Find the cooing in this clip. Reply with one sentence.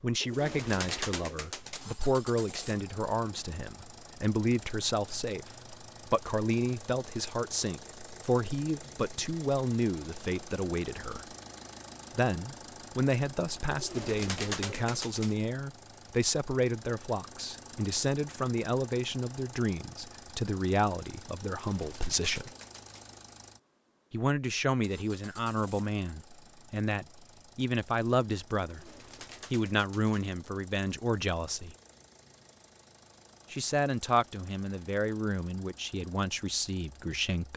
The cooing can be heard from 0.2 to 1.9 s, from 13.7 to 15.3 s, from 21.6 to 23.1 s and from 28.6 to 30.2 s.